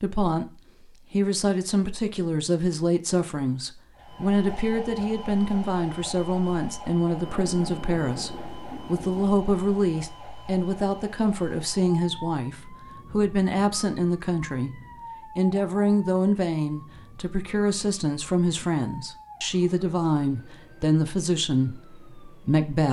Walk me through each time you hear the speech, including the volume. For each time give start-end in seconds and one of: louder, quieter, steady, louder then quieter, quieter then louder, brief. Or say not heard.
0.0-22.8 steady.